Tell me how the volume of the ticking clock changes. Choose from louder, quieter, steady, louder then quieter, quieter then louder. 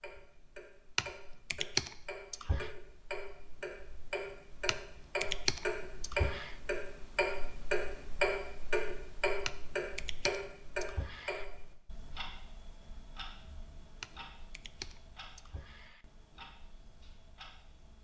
louder then quieter.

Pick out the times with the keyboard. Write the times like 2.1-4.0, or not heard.
0.9-2.6, 4.7-6.5, 9.4-11.4, 14.0-16.0.